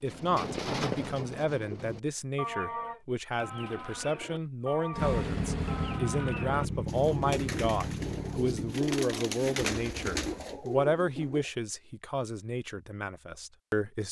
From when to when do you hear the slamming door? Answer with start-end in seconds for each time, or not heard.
not heard.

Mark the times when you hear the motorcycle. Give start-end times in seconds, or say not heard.
4.9-8.8.